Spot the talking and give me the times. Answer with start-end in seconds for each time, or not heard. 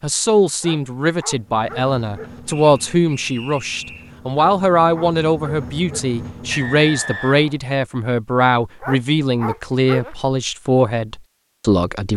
0.0-12.1.